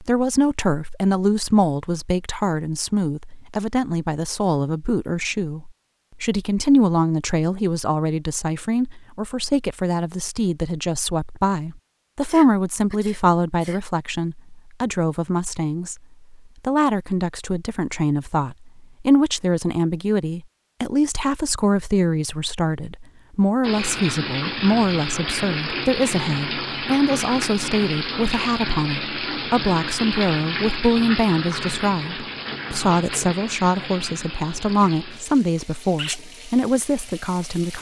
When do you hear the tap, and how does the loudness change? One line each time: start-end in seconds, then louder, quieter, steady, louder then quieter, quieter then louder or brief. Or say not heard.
23.6-37.7 quieter.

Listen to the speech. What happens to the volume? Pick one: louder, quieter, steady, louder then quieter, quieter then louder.
steady.